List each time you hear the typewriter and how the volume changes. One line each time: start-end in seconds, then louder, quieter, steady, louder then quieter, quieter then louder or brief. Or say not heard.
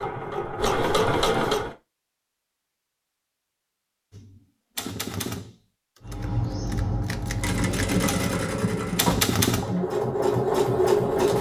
4.1-9.8 quieter then louder.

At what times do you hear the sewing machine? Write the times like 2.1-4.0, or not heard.
0.0-1.8, 6.0-11.3.